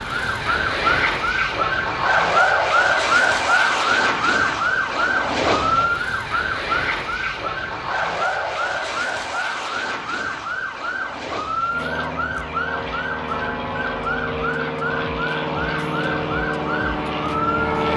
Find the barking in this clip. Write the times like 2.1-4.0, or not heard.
not heard.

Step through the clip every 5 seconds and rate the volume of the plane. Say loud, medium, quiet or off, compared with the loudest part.
loud, loud, medium, loud.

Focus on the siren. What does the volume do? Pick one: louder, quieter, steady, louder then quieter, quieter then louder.
quieter.